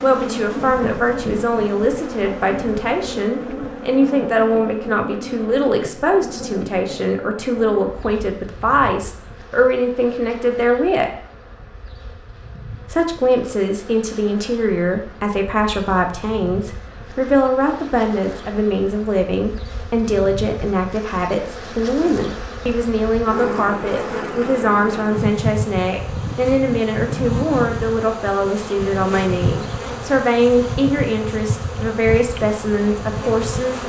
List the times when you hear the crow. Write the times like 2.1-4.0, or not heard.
not heard.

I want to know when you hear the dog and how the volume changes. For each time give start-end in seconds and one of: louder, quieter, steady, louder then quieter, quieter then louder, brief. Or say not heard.
not heard.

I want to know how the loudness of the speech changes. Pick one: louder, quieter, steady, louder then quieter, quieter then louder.
steady.